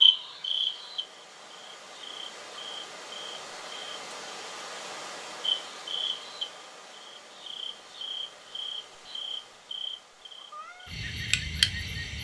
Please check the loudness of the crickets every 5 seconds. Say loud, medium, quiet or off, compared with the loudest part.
loud, medium, loud.